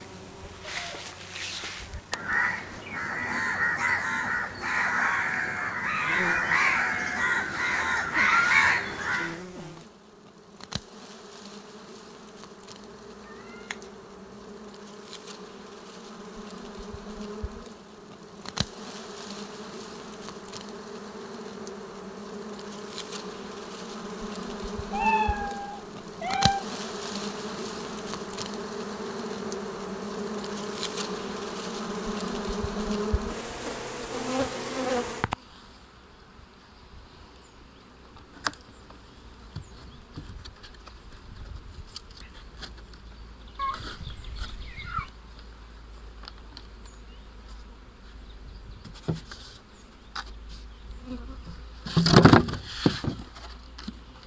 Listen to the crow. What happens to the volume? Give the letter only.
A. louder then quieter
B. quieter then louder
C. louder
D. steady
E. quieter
C.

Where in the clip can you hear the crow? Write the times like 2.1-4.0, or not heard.
1.8-9.4.